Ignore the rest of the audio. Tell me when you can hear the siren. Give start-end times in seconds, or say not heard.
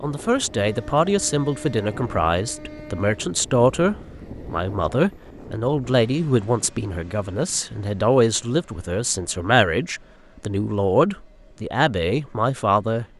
not heard.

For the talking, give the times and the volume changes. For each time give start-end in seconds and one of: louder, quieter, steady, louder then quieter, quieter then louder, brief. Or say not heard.
0.0-13.1 steady.